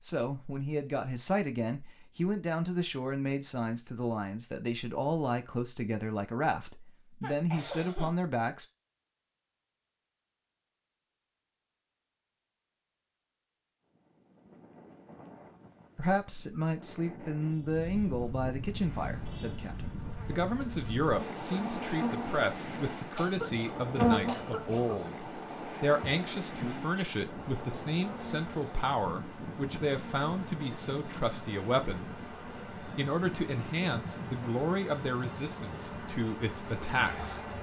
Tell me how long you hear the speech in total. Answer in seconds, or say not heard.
29 s.